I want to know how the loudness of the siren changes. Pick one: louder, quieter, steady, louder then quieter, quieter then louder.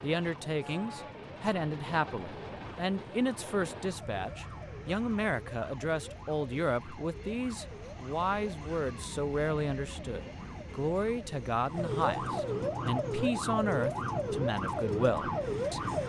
louder.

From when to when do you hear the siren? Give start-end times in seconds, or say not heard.
0.0-16.0.